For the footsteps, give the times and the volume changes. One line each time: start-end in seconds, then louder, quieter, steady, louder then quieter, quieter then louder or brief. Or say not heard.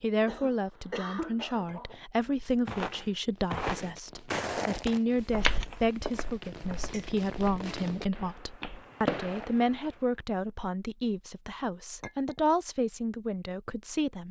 2.6-9.6 quieter.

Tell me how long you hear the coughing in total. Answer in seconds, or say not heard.
2 s.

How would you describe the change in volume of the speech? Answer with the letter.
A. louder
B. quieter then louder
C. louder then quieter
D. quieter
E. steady
E.